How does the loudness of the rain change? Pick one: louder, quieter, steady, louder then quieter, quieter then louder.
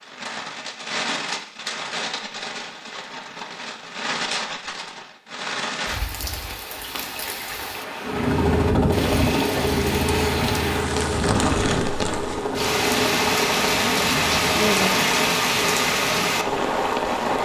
louder.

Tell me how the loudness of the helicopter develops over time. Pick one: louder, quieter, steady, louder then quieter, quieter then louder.
quieter.